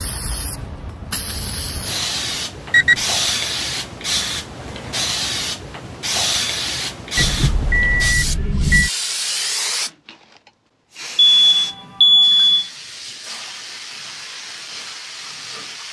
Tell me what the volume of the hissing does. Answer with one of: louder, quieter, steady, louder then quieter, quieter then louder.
quieter.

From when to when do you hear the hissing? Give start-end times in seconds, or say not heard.
0.0-15.8.